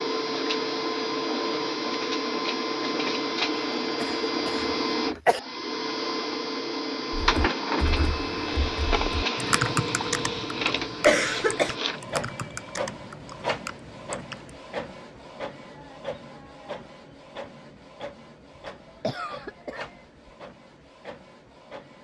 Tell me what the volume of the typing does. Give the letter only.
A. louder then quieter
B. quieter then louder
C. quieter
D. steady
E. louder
A.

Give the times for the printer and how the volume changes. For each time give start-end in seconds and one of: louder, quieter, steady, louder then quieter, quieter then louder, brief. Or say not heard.
0.0-21.9 quieter.